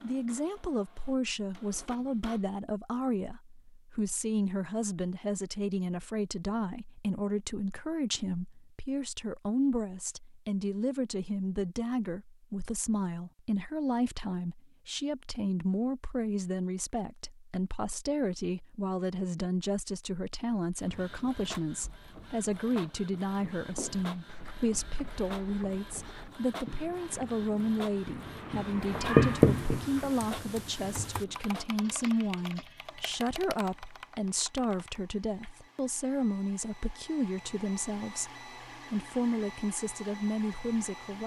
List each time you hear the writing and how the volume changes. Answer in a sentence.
You can hear the writing from 23.6 to 31.2 s, getting louder then quieter.